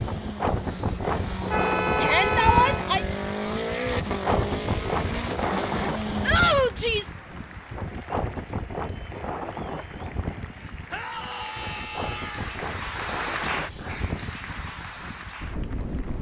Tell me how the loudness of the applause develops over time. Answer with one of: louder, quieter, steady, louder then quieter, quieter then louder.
louder then quieter.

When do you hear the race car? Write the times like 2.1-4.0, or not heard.
0.0-6.5.